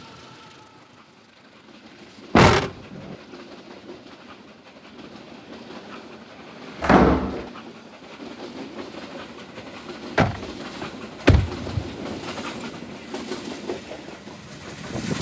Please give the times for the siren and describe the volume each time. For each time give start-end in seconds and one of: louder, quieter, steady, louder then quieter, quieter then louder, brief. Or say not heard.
not heard.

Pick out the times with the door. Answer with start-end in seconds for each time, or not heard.
2.4-3.1, 6.8-7.5, 10.2-11.8.